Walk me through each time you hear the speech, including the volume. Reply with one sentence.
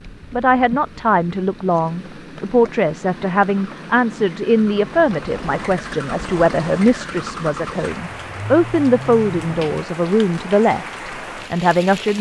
The speech can be heard from 0.3 to 12.1 s, at a steady volume.